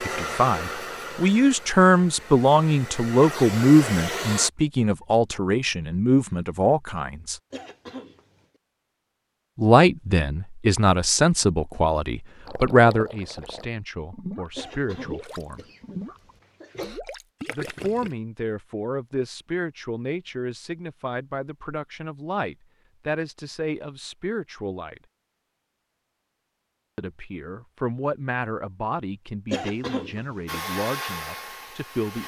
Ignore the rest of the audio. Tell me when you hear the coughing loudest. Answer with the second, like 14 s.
30 s.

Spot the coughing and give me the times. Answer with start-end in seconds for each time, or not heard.
7.5-8.4, 14.6-17.0, 29.5-30.6.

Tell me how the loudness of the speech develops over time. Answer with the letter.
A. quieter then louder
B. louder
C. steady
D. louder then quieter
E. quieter
E.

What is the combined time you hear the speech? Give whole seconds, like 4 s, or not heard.
26 s.